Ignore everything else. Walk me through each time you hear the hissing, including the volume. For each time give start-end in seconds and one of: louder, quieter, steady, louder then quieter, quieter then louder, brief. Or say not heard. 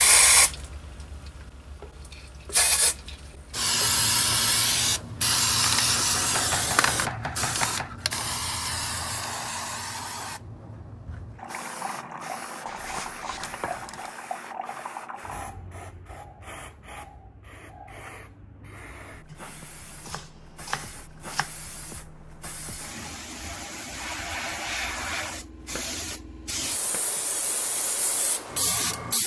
0.0-29.2 quieter then louder.